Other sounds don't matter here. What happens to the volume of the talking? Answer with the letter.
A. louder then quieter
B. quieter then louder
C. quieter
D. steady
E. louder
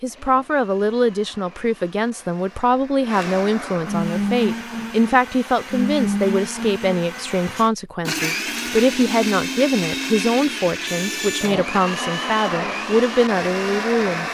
D.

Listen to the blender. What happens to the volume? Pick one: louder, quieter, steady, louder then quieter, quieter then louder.
louder.